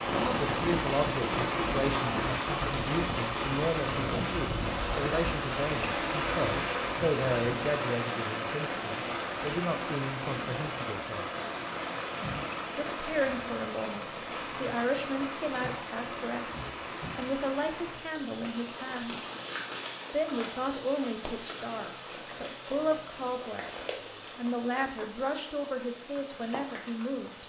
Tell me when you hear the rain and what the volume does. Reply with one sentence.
The rain can be heard from 0.0 to 27.4 s, getting quieter.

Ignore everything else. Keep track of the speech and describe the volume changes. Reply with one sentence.
The volume of the speech stays about the same.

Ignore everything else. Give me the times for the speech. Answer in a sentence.
You can hear the speech from 0.1 to 11.3 s, from 12.8 to 19.1 s and from 20.1 to 27.4 s.